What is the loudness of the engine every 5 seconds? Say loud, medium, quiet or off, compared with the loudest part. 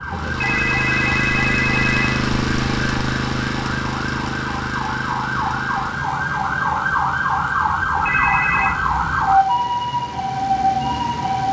loud, medium, quiet.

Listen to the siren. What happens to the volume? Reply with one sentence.
The volume of the siren goes up.